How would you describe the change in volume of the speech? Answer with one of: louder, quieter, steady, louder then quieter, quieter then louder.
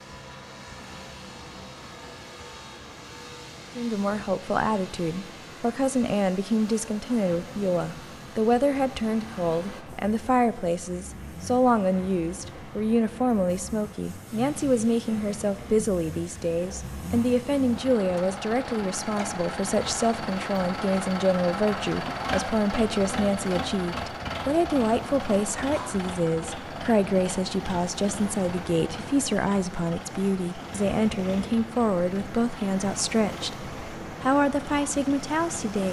steady.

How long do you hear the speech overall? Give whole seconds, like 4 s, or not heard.
32 s.